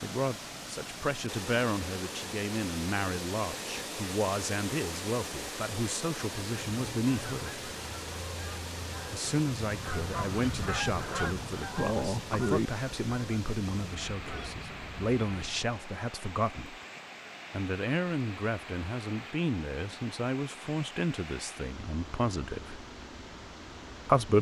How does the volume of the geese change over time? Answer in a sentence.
The volume of the geese goes up, then down.